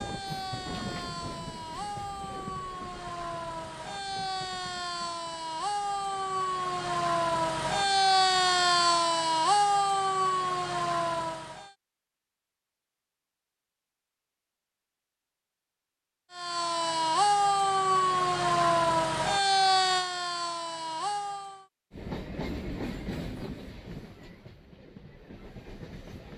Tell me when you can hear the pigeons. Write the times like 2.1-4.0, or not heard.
not heard.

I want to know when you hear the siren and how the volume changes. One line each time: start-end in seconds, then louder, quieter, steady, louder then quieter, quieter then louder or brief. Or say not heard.
0.0-11.8 louder
16.3-21.6 quieter.